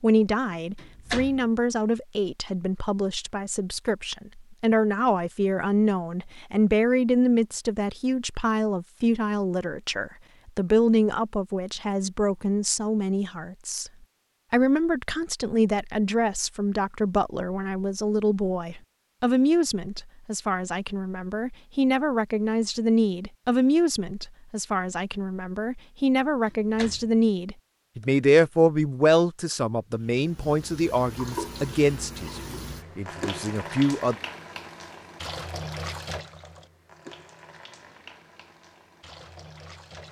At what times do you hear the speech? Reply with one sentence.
You can hear the speech from 0.0 to 13.9 s and from 14.5 to 34.1 s.